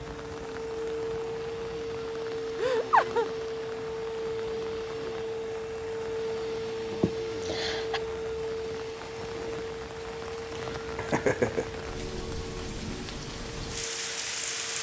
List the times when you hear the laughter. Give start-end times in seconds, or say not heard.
2.5-3.3, 6.9-8.0, 10.6-11.8.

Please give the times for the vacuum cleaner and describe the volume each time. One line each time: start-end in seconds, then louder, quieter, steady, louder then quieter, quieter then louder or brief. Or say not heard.
0.0-14.7 quieter.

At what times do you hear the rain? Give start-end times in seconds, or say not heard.
0.0-14.7.